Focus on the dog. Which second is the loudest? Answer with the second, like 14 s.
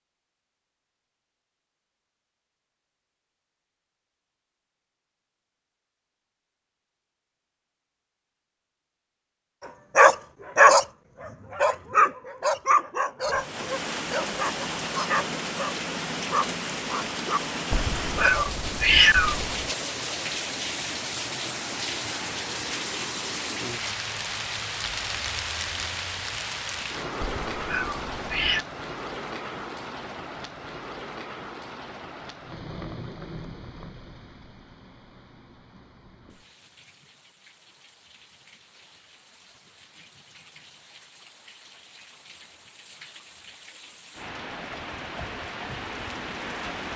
11 s.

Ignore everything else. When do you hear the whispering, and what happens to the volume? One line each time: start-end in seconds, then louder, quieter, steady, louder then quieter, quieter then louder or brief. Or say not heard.
not heard.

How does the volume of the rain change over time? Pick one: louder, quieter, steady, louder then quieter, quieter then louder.
quieter then louder.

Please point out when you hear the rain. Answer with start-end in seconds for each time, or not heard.
13.2-46.9.